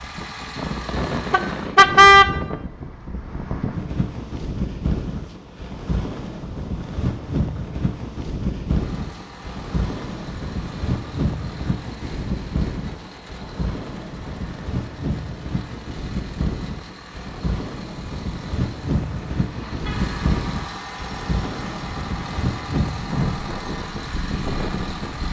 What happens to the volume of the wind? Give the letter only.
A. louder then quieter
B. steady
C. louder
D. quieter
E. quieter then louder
B.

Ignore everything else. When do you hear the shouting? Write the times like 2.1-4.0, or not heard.
not heard.